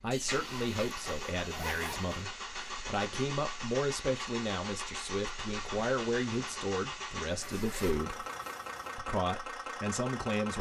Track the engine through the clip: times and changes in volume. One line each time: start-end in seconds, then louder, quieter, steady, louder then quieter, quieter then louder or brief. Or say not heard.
0.0-10.5 steady.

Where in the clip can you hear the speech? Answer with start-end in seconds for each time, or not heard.
0.0-8.2, 8.9-10.5.